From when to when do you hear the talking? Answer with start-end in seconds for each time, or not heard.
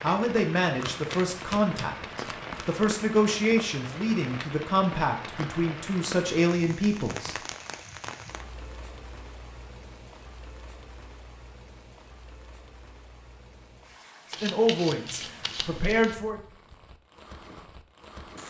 0.0-7.3, 14.4-16.4.